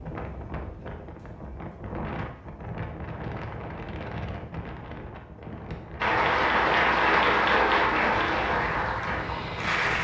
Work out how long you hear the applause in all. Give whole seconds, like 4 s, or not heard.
4 s.